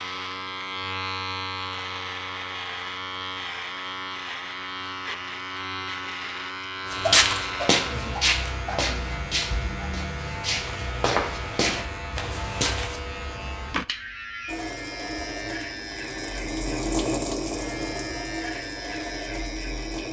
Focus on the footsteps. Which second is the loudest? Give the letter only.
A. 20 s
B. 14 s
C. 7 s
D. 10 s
C.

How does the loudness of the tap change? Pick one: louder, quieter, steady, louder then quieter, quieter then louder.
louder then quieter.